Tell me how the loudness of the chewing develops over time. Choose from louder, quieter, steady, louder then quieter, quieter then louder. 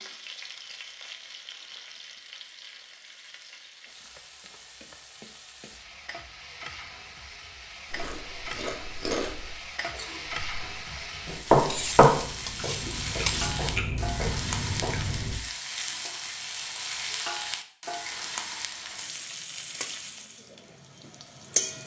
quieter then louder.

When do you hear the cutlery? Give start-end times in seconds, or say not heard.
11.7-13.6.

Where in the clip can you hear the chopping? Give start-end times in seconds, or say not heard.
11.2-15.2.